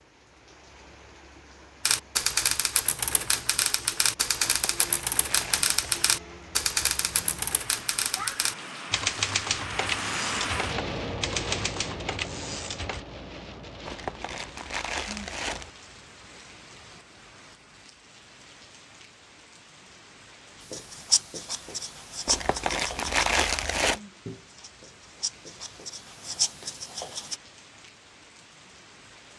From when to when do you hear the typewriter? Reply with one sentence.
The typewriter can be heard from 1.9 to 13.0 s.